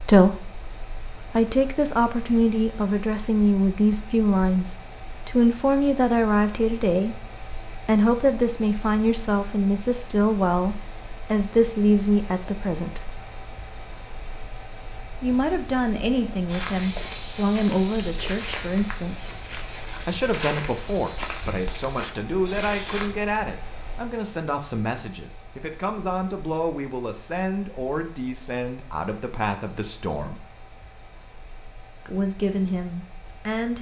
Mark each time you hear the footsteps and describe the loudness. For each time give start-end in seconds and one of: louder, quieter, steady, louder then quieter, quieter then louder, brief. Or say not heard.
16.4-23.1 steady.